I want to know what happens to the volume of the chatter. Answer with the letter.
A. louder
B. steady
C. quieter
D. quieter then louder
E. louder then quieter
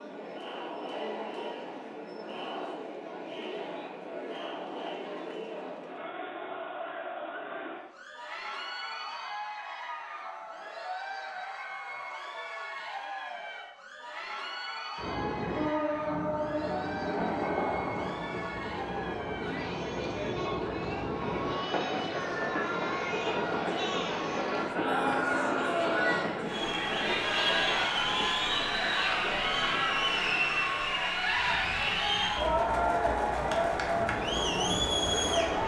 A.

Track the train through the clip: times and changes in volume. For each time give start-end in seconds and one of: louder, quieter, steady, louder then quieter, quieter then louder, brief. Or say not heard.
14.9-35.6 quieter.